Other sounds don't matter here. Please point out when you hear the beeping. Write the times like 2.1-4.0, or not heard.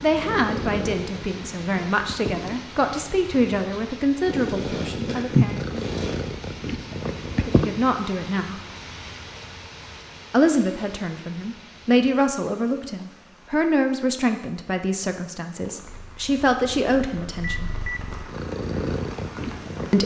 17.4-18.1.